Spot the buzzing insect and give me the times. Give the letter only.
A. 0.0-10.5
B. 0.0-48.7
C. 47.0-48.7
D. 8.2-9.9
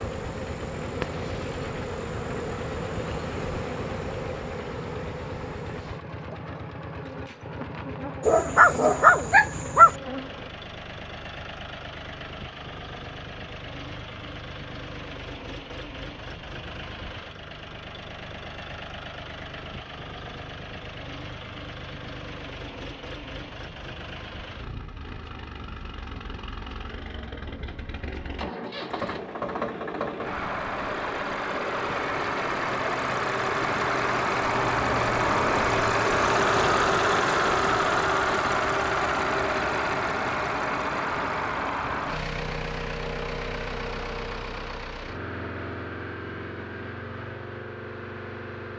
A.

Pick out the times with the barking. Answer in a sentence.
You can hear the barking from 8.2 to 9.9 s.